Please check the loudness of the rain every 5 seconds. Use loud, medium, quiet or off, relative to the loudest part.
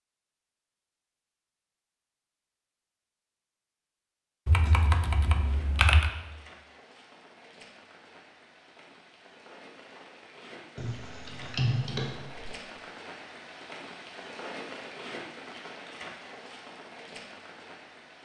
off, medium, loud, loud.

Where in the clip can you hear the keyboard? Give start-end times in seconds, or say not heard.
4.5-6.1, 10.8-12.5.